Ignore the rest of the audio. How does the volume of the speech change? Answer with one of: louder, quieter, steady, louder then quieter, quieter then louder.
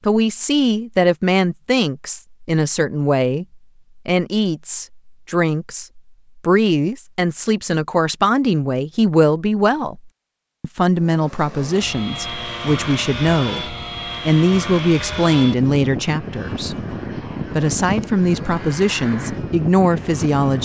steady.